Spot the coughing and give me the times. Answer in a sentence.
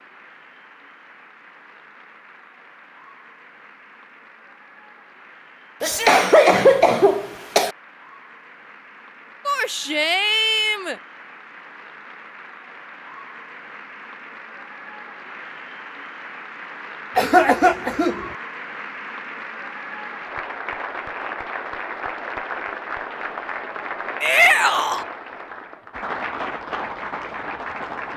The coughing can be heard from 5.8 to 7.7 s and from 17.1 to 18.3 s.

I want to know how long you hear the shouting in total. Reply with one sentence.
The shouting can be heard for 3 seconds in total.